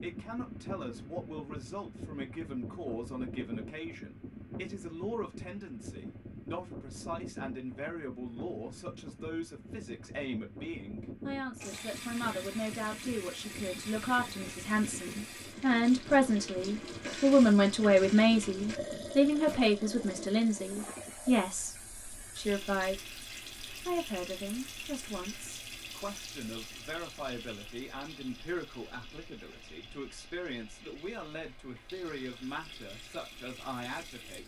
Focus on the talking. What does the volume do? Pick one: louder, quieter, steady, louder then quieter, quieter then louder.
louder then quieter.